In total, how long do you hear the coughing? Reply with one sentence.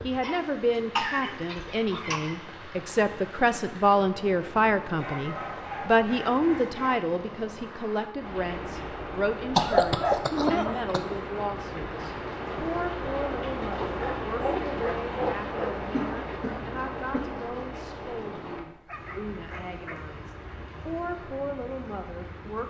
The coughing can be heard for 4 seconds in total.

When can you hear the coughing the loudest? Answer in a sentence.
The volume of the coughing peaks at 10 seconds.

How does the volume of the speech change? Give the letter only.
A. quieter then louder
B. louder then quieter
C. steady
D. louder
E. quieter
E.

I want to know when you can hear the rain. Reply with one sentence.
The rain can be heard from 0.0 to 22.6 s.